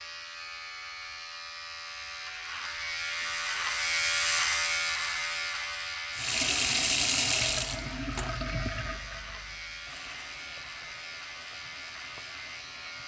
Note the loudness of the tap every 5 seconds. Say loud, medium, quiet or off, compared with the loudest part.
off, loud, quiet.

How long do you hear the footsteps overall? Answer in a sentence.
The footsteps can't be heard in this clip.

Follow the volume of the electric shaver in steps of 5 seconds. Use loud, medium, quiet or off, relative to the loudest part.
loud, medium, medium.